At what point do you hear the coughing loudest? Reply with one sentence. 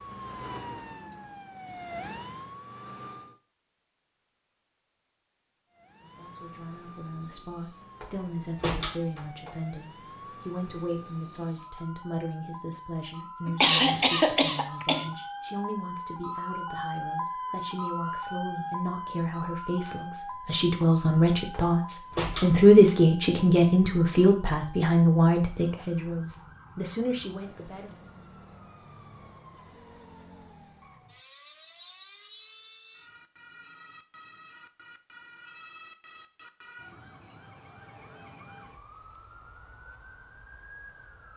The loudest moment of the coughing is at 14 seconds.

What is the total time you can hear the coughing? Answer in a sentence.
The coughing can be heard for 2 seconds in total.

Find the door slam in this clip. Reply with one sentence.
The door slam can be heard from 8.0 to 9.5 s and from 21.5 to 22.5 s.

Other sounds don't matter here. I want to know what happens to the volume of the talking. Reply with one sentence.
The loudness of the talking goes up.